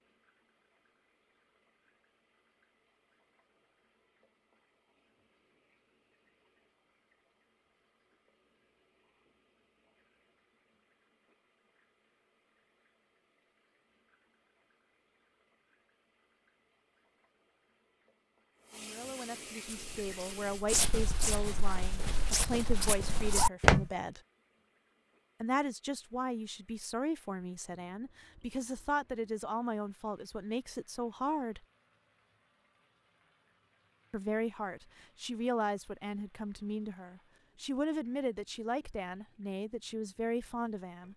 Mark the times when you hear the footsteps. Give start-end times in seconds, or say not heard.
19.6-23.9.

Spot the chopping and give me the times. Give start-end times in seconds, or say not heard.
not heard.